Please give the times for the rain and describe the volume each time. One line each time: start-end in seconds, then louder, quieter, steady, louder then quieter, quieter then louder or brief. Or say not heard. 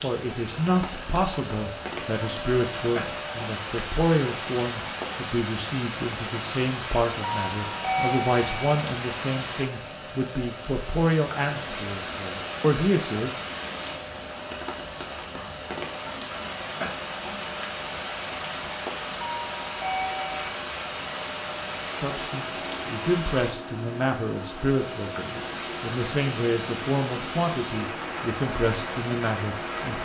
0.0-29.9 steady.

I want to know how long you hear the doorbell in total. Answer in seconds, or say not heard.
3 s.